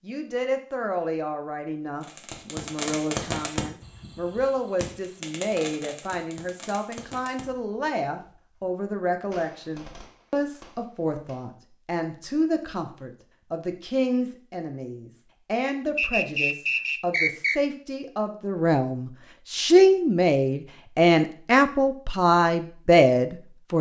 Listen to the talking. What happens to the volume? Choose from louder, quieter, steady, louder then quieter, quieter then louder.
louder.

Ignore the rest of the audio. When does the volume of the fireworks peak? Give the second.
3 s.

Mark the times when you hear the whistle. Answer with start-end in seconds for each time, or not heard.
15.9-17.6.